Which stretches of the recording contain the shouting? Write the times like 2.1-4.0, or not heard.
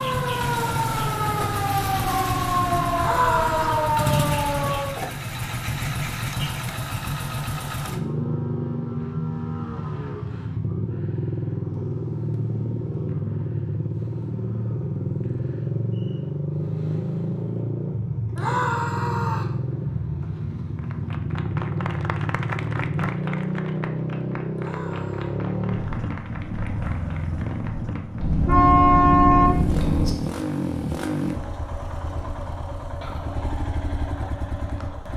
3.0-4.0, 18.4-19.6, 24.6-25.4.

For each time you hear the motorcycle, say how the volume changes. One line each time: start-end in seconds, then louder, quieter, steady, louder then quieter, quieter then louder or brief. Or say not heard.
0.0-35.1 steady.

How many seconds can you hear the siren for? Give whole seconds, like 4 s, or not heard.
5 s.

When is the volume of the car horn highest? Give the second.
29 s.